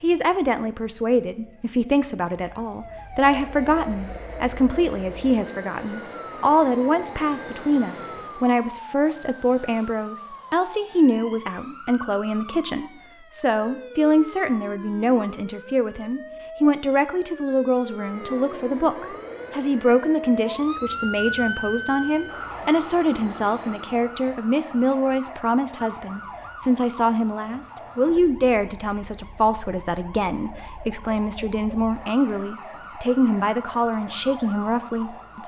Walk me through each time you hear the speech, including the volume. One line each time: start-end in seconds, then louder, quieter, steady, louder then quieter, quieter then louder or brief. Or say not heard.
0.0-35.4 steady.